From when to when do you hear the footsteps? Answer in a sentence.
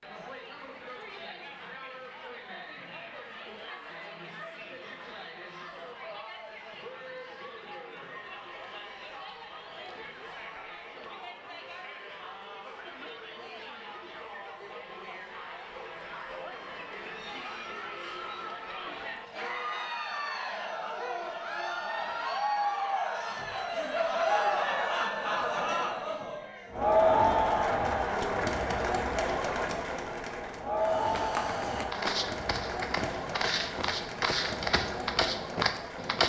The footsteps can be heard from 30.8 to 36.2 s.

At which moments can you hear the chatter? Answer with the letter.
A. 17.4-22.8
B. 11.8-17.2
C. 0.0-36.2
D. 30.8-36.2
C.